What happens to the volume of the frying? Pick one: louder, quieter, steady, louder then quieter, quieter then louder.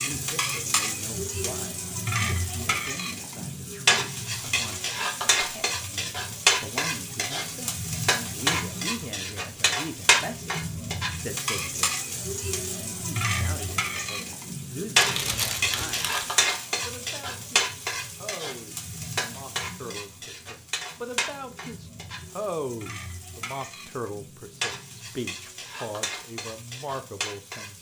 quieter.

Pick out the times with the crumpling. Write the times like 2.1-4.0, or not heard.
14.9-16.4.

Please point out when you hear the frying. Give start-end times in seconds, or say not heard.
0.0-27.7.